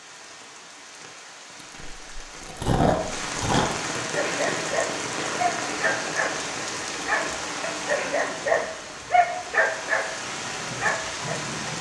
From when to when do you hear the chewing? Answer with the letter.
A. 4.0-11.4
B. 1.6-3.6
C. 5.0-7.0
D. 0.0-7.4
B.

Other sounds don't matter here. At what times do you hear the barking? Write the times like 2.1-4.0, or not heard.
4.0-11.4.